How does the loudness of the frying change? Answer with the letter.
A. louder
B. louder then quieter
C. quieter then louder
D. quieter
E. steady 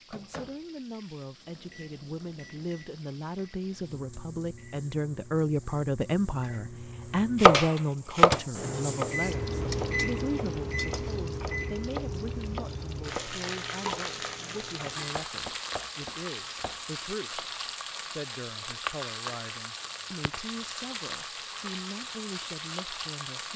A.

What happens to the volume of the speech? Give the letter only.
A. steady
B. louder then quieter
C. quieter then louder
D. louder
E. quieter
B.